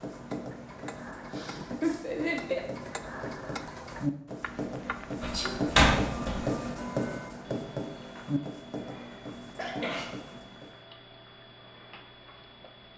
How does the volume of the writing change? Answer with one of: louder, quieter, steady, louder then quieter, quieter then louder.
louder then quieter.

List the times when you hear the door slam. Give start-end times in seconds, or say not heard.
5.2-6.5.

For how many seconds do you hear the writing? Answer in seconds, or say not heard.
11 s.